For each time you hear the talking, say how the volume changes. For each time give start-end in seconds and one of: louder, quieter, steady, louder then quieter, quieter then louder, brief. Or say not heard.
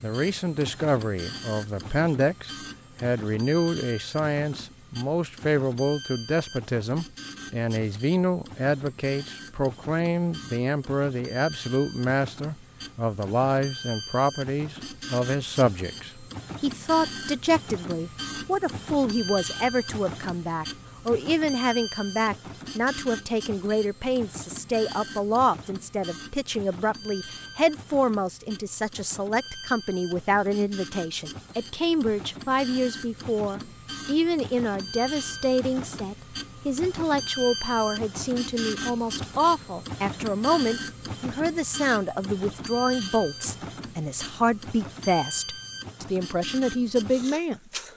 0.0-47.6 steady.